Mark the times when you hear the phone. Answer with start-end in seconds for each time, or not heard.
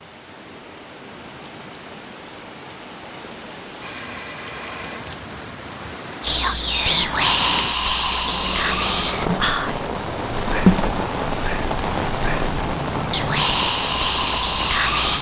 3.8-5.1.